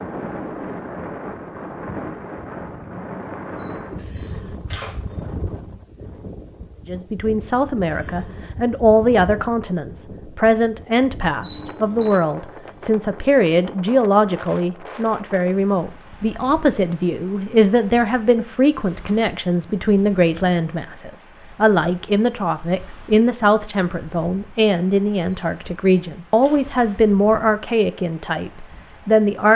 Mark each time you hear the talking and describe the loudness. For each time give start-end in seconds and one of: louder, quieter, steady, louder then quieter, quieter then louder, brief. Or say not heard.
6.8-29.5 steady.